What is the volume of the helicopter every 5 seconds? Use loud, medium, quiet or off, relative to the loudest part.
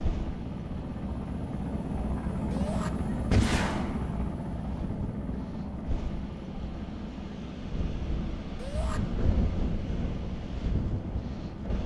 loud, medium, medium.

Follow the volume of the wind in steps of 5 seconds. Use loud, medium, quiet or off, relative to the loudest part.
medium, loud, loud.